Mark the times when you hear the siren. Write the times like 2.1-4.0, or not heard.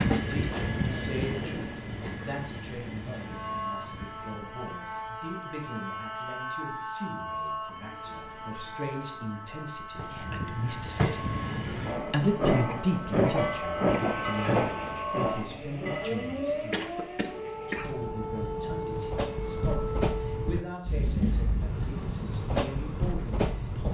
3.2-20.8.